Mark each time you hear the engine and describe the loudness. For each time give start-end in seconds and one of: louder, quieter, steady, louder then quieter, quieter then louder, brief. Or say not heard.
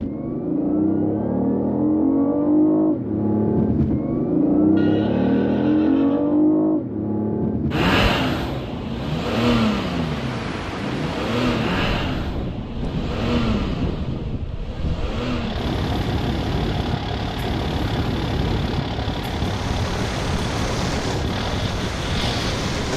0.0-22.9 quieter.